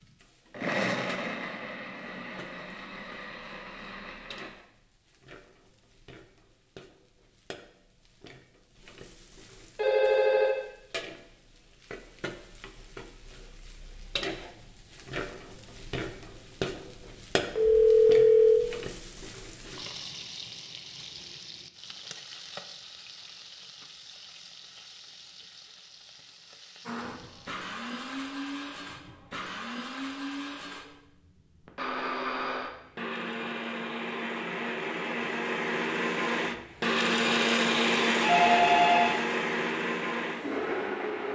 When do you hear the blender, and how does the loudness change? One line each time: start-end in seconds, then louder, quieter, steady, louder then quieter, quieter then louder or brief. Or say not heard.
0.0-4.5 quieter
26.9-41.2 louder.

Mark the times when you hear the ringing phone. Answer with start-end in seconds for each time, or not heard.
9.8-10.6, 17.6-18.6, 38.2-39.1.